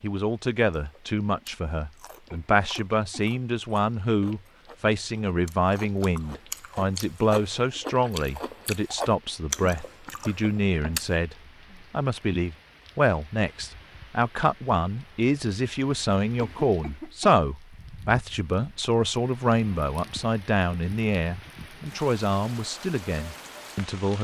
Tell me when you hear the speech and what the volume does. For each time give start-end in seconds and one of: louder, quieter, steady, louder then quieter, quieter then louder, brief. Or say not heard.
0.0-24.2 steady.